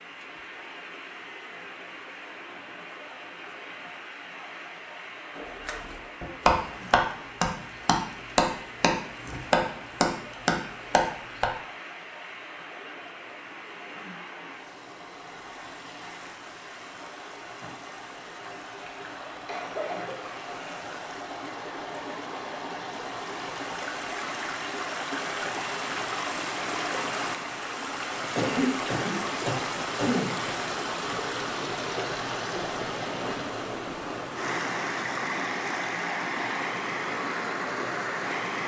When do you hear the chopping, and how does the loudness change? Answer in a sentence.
The chopping can be heard from 5.3 to 11.5 s, at a steady volume.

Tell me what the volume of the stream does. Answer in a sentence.
The volume of the stream goes up.